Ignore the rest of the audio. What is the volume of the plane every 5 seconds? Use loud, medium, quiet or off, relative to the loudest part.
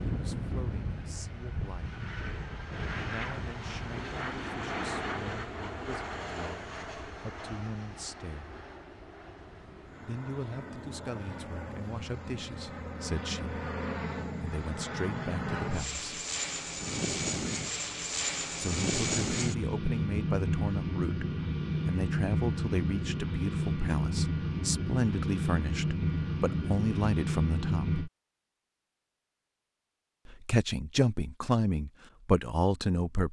medium, medium, medium, loud, loud, loud, off.